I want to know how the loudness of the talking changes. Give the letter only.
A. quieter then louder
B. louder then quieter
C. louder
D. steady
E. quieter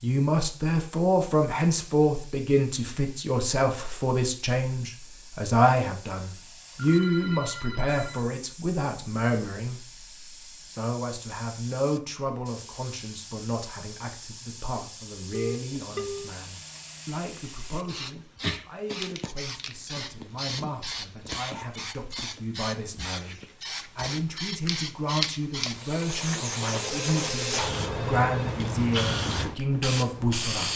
A.